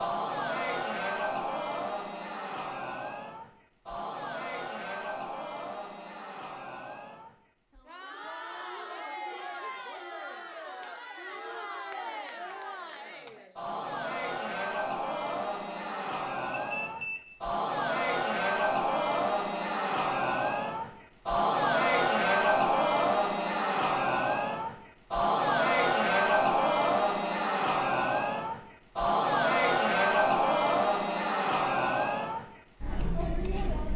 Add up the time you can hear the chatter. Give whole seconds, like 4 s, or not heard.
34 s.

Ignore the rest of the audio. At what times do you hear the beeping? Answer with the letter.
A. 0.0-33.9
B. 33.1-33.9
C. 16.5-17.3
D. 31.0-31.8
C.